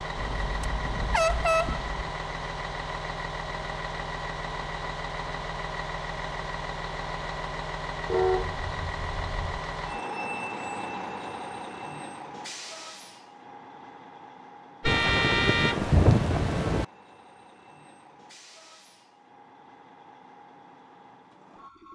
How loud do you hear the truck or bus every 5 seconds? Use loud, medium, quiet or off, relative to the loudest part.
loud, loud, loud, quiet, quiet.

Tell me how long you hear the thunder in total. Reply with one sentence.
You can hear the thunder for 2 seconds altogether.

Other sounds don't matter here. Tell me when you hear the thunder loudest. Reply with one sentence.
The volume of the thunder peaks at 16 seconds.